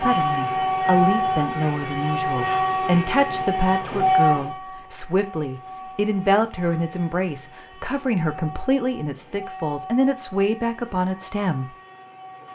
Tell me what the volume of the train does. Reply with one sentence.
The volume of the train goes down.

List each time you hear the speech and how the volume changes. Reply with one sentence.
The speech can be heard from 0.0 to 11.7 s, at a steady volume.